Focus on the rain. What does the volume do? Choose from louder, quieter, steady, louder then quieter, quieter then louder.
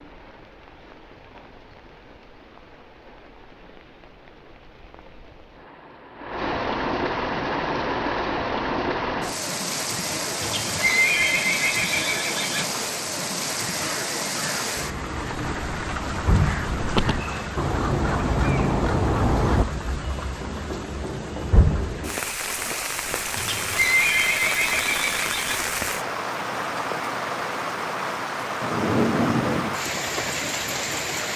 louder.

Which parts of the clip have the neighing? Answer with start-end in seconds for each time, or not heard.
10.4-12.7, 23.4-25.6.